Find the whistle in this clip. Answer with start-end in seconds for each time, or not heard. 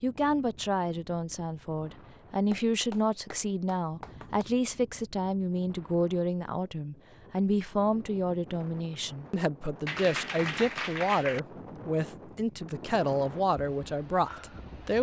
not heard.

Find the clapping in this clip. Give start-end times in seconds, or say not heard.
2.5-4.5, 9.8-11.4.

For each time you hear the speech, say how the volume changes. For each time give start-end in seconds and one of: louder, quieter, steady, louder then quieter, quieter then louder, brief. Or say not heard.
0.0-14.9 steady.